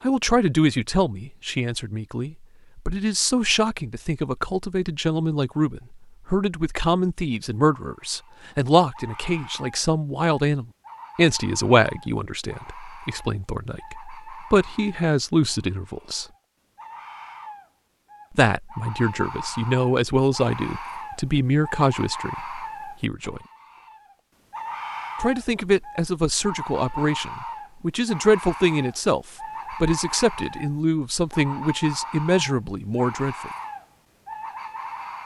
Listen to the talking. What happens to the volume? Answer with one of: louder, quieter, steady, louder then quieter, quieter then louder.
steady.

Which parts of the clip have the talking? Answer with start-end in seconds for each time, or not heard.
0.0-16.2, 18.4-23.4, 25.2-33.5.